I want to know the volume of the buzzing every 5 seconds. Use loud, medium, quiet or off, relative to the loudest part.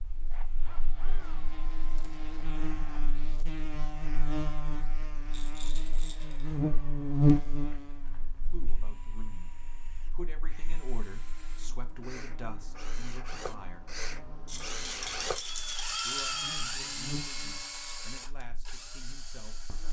medium, loud, quiet, quiet.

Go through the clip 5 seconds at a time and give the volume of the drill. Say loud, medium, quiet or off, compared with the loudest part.
quiet, quiet, medium, loud.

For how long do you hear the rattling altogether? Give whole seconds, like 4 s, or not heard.
3 s.